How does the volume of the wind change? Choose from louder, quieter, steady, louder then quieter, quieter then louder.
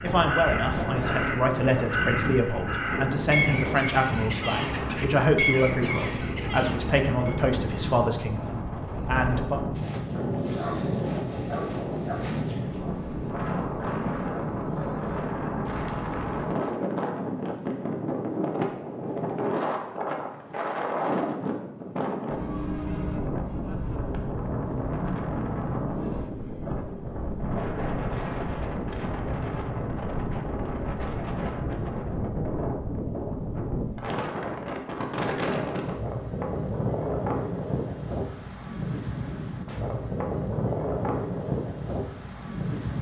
steady.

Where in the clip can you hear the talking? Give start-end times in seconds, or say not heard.
0.0-9.6.